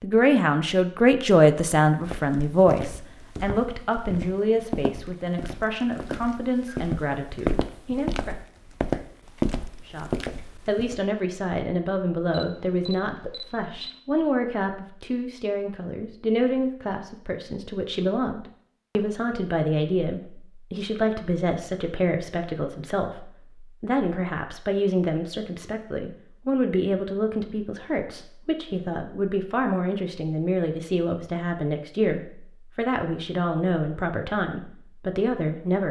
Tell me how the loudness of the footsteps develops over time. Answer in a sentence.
The volume of the footsteps goes up.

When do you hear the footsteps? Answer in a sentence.
The footsteps can be heard from 2.0 to 11.0 s.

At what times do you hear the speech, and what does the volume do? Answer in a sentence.
You can hear the speech from 0.0 to 8.3 s, getting quieter; and from 9.8 to 35.8 s, at a steady volume.